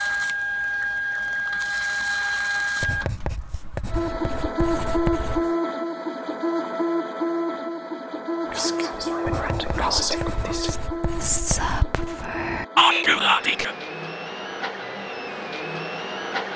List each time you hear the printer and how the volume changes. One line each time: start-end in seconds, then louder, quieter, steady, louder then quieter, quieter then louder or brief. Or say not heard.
0.0-16.5 quieter.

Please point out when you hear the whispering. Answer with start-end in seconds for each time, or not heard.
8.4-13.8.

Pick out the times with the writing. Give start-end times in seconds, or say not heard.
2.8-5.5, 9.2-11.8.